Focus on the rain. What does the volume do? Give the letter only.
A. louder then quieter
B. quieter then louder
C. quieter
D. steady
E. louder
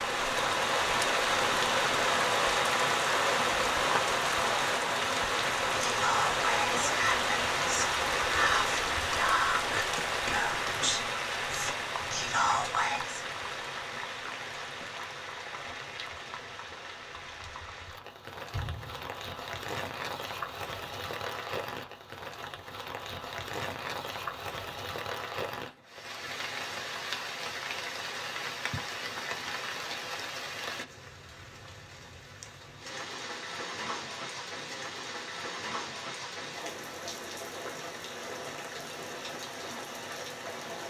C.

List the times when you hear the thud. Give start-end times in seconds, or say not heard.
18.5-19.1.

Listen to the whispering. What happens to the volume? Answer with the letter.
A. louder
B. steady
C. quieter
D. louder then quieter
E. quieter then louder
B.